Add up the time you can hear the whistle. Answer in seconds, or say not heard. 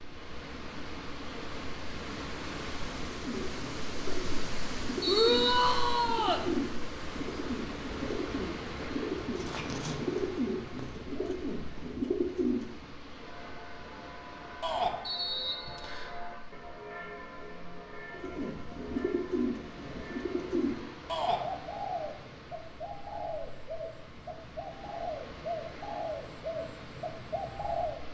2 s.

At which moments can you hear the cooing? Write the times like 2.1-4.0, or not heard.
3.1-12.9, 18.1-28.0.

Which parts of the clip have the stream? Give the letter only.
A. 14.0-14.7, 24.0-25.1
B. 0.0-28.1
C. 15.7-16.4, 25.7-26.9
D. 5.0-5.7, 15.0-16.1
B.